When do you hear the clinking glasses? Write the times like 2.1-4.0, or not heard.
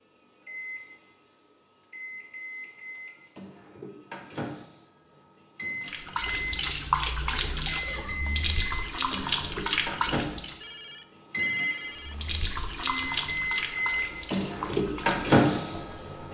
not heard.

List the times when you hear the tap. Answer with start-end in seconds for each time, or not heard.
5.8-10.6, 11.9-16.3.